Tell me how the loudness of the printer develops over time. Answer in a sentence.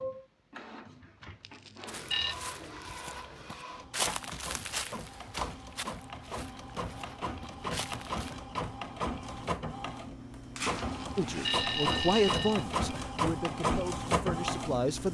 The loudness of the printer goes up.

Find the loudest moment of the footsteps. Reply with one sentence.
The loudest moment of the footsteps is at 4 seconds.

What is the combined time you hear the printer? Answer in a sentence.
You can hear the printer for 15 seconds altogether.